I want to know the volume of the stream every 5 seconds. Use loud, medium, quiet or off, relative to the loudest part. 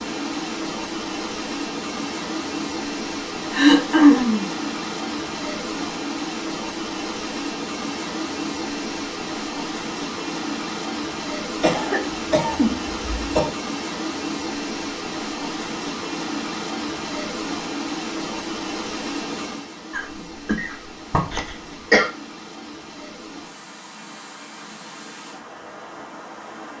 loud, loud, loud, loud, medium, medium.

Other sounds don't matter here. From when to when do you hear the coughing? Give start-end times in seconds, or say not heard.
3.5-4.5, 11.6-13.5, 19.9-22.1.